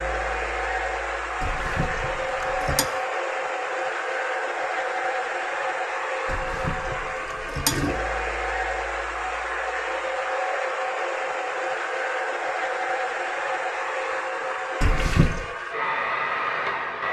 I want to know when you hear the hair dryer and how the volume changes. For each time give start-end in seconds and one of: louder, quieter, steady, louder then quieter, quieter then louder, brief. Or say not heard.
0.0-17.0 steady.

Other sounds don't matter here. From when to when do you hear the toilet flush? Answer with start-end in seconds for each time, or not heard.
1.4-2.9, 6.2-8.0, 14.8-15.4.